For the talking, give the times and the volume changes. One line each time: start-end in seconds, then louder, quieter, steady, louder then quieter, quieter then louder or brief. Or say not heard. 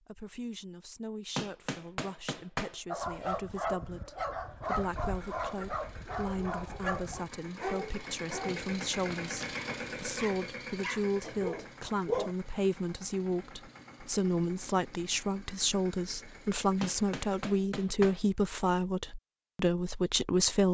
0.1-20.6 louder.